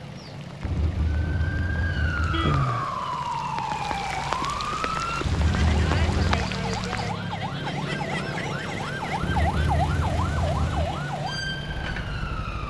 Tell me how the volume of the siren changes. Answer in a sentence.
The loudness of the siren stays about the same.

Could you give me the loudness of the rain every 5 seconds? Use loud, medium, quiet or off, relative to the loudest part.
loud, loud, off.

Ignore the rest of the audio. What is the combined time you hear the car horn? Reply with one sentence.
You can hear the car horn for 5 seconds altogether.